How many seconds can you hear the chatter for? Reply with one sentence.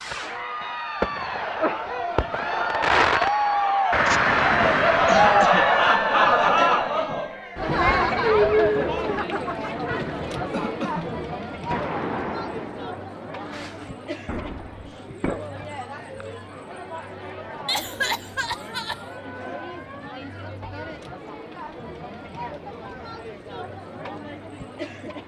The chatter can be heard for 25 seconds in total.